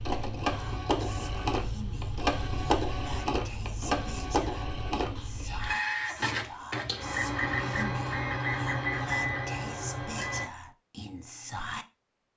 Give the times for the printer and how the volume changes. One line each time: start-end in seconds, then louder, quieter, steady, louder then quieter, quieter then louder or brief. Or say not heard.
0.0-10.5 steady.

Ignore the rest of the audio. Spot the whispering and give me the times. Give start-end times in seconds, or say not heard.
0.5-11.8.